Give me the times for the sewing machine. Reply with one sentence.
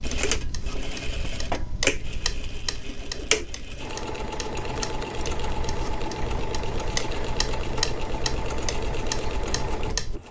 The sewing machine can be heard from 0.0 to 10.2 s.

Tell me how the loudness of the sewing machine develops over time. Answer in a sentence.
The loudness of the sewing machine stays about the same.